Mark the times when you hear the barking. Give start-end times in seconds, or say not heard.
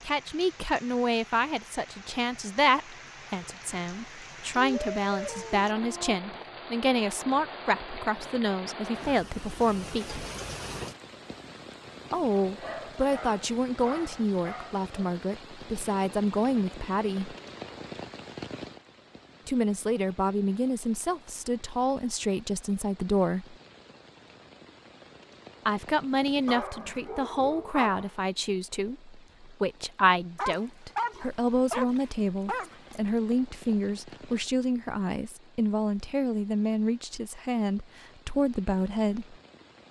4.5-6.2, 12.4-15.2, 26.4-28.1, 30.4-33.0.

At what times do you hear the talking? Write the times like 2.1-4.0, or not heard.
0.1-10.2, 12.1-17.4, 19.4-23.6, 25.6-39.4.